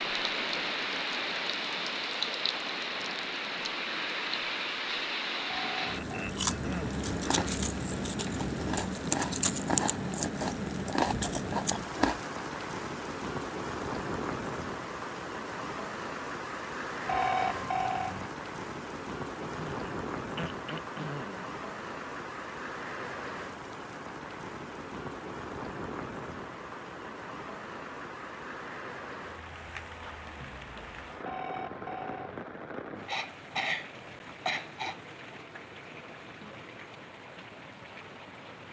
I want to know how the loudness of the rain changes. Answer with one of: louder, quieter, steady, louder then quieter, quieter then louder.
quieter.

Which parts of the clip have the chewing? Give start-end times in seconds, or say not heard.
6.3-12.2.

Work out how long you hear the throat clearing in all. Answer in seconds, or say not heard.
6 s.